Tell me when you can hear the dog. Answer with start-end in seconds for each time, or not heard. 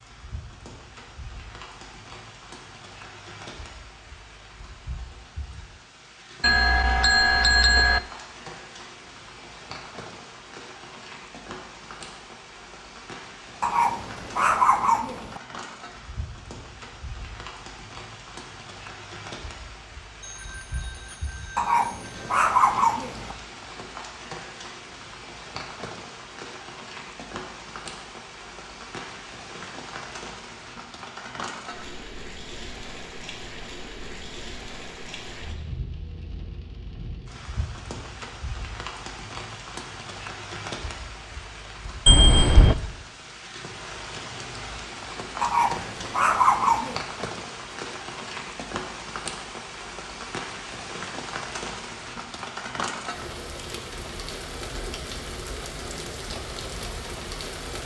13.6-15.4, 21.6-23.4, 45.4-47.0.